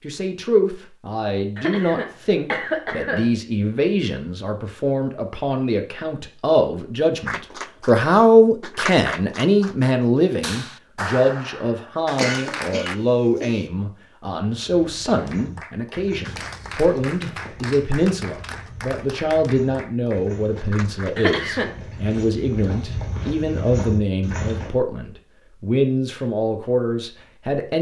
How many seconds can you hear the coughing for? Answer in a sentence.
The coughing can be heard for 4 seconds in total.